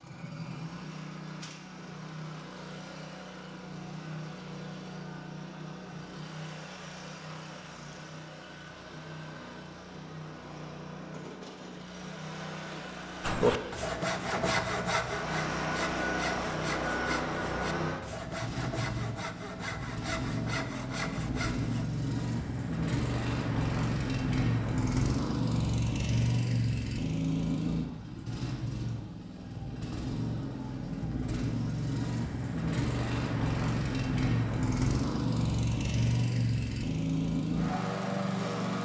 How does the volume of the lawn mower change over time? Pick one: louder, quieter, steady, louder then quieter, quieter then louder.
louder.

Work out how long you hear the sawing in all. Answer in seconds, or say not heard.
9 s.